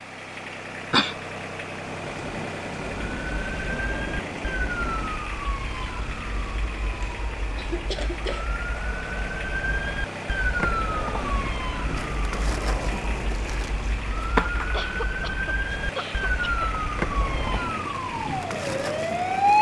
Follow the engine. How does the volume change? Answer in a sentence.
The volume of the engine stays about the same.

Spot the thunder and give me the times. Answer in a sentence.
The thunder can be heard from 1.9 to 5.2 s.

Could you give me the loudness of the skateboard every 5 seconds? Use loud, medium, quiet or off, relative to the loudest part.
off, off, loud, loud.